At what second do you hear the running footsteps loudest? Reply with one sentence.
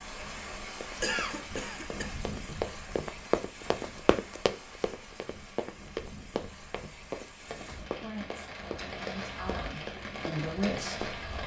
The loudest moment of the running footsteps is at 3 seconds.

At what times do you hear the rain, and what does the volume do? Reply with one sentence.
The rain can be heard from 0.0 to 11.4 s, getting quieter then louder.